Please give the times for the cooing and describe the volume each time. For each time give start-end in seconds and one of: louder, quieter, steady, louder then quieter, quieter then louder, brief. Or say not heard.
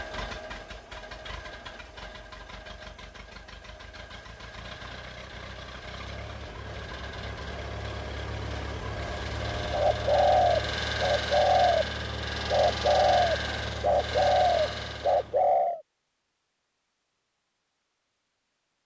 9.7-15.8 steady.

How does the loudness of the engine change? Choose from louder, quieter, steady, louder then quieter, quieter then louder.
louder.